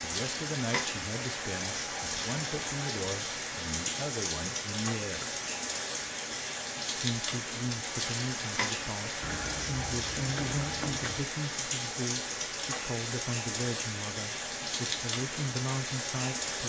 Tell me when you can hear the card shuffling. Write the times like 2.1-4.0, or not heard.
9.2-11.2.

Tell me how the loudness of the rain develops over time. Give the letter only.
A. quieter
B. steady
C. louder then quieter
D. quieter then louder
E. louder
B.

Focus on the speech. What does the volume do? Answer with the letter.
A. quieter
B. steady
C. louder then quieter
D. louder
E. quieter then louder
B.